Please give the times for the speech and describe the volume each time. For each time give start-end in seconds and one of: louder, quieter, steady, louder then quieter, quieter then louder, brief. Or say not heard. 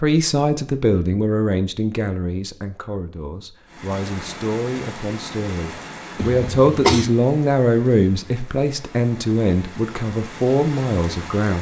0.0-11.5 quieter then louder.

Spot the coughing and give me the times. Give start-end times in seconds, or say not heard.
6.2-7.2.